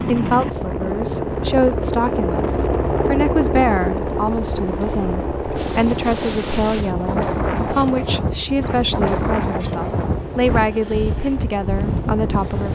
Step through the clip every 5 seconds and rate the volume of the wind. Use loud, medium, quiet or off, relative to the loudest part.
medium, loud, loud.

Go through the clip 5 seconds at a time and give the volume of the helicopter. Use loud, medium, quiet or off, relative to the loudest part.
loud, medium, medium.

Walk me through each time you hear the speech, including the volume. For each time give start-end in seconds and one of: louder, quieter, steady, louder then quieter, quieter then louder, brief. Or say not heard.
0.1-12.7 steady.